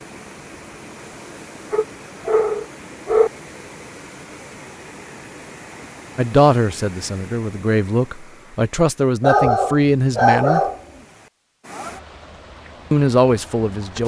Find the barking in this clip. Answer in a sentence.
You can hear the barking from 1.7 to 3.3 s and from 9.2 to 10.8 s.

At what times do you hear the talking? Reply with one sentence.
The talking can be heard from 6.2 to 10.6 s and from 12.9 to 14.0 s.